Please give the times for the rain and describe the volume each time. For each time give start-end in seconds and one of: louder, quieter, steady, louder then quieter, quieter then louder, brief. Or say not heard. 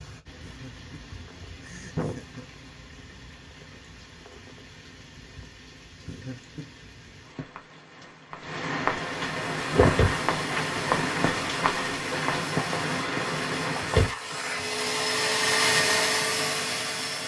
0.0-14.1 louder.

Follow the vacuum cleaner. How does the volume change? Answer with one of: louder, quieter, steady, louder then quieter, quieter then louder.
louder.